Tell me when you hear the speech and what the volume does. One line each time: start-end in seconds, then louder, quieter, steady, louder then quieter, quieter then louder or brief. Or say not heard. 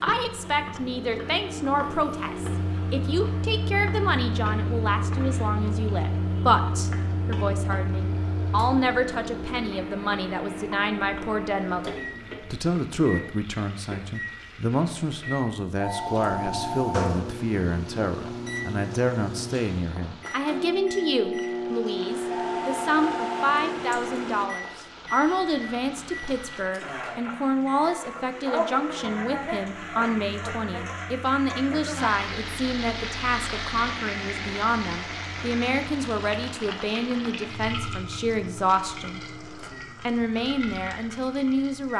0.0-39.2 steady
40.0-41.9 brief.